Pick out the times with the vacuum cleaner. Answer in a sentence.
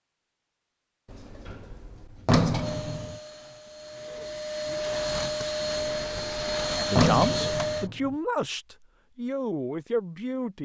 The vacuum cleaner can be heard from 2.5 to 7.9 s.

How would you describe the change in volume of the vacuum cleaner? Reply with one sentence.
The loudness of the vacuum cleaner goes up.